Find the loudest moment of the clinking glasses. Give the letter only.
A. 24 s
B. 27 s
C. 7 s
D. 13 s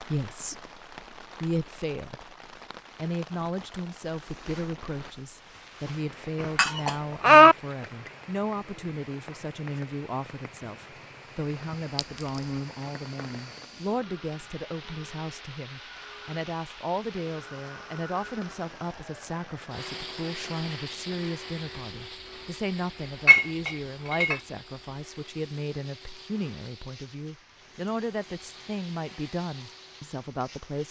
C.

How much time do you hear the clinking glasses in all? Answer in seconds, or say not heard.
3 s.